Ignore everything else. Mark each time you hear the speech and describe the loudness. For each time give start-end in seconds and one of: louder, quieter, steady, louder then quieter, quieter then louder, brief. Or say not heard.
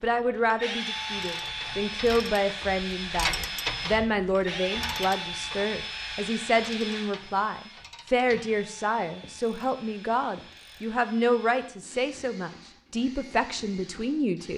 0.0-14.5 steady.